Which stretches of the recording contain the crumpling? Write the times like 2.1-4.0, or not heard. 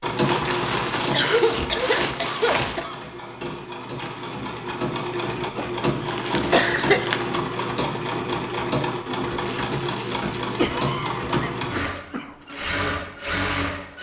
0.2-2.9, 6.0-7.4, 9.3-10.6.